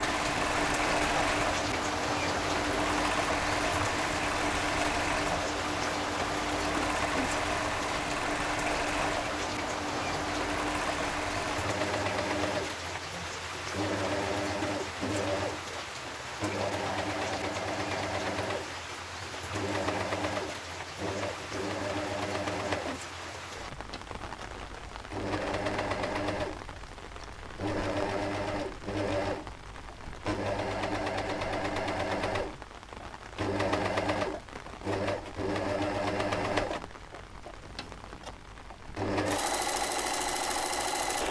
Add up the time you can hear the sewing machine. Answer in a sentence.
The sewing machine can be heard for 41 seconds in total.